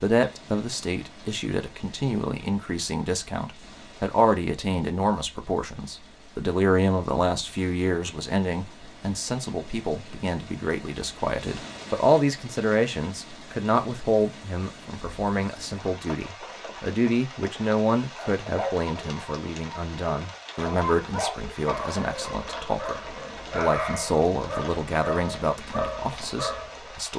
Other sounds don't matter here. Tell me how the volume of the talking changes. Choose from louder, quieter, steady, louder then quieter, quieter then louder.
steady.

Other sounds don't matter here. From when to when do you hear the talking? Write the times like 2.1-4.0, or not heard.
0.0-27.1.